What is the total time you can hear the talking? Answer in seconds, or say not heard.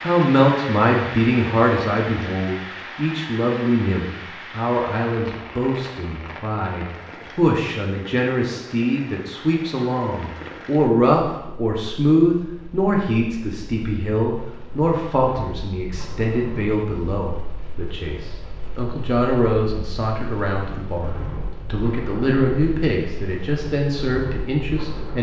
25 s.